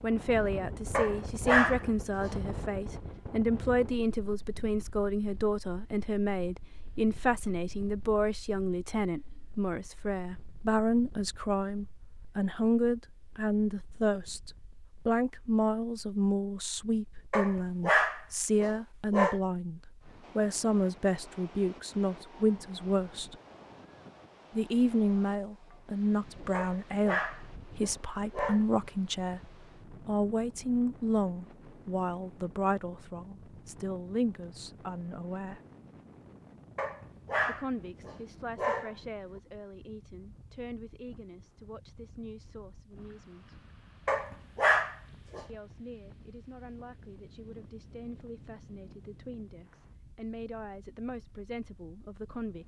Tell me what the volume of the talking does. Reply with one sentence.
The loudness of the talking goes down.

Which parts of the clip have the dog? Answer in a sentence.
You can hear the dog from 0.9 to 2.4 s, from 17.3 to 19.4 s, from 26.5 to 28.6 s, from 36.8 to 39.0 s and from 44.0 to 45.5 s.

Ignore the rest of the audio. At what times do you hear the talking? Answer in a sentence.
You can hear the talking from 0.0 to 23.4 s, from 24.5 to 35.6 s, from 37.5 to 43.6 s and from 45.5 to 52.6 s.